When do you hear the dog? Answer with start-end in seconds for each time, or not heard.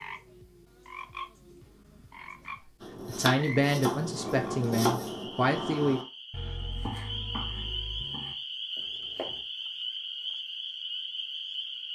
not heard.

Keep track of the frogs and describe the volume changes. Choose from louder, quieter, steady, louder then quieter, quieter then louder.
louder.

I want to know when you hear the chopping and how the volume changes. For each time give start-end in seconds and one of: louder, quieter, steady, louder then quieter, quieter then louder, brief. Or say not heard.
2.8-9.4 quieter.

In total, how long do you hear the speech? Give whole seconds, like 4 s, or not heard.
3 s.